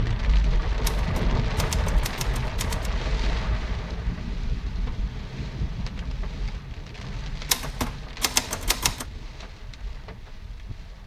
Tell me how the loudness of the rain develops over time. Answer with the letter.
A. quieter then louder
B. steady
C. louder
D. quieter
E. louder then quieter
D.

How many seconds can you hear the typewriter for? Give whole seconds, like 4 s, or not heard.
4 s.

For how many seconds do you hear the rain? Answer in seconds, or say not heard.
11 s.